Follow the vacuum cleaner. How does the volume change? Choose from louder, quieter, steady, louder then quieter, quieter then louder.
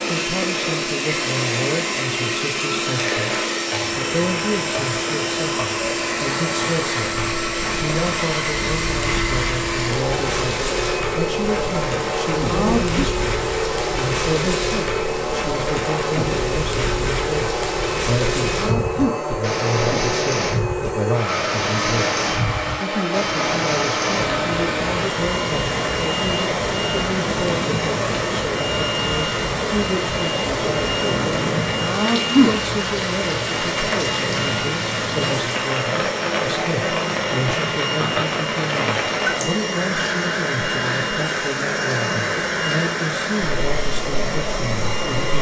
steady.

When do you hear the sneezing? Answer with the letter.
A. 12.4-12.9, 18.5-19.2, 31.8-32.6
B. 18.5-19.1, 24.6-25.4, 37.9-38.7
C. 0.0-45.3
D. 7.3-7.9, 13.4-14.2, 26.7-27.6
A.